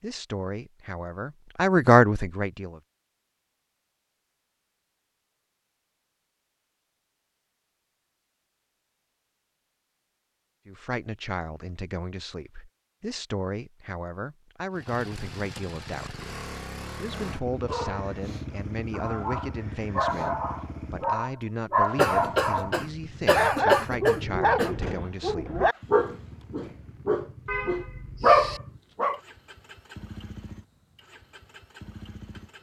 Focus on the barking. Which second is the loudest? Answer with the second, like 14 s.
28 s.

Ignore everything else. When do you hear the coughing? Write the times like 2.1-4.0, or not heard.
21.9-24.7.